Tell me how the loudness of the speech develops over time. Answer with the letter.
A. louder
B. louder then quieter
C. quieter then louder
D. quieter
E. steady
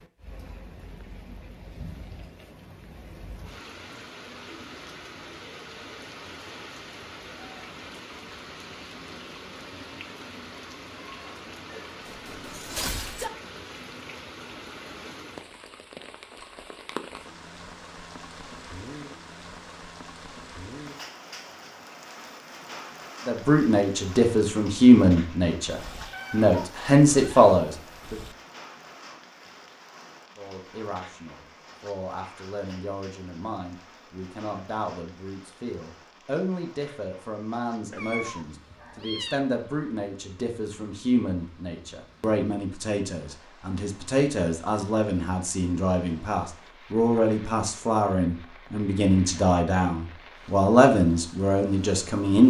C.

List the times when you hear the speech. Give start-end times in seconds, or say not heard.
23.2-28.2, 30.4-52.4.